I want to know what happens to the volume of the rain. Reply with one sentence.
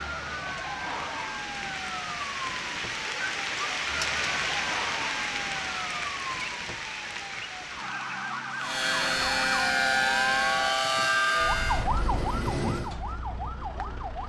The volume of the rain goes up, then down.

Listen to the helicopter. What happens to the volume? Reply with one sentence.
The volume of the helicopter goes down.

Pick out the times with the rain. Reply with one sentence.
You can hear the rain from 0.0 to 10.8 s.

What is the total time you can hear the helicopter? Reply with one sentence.
The helicopter can be heard for 4 seconds in total.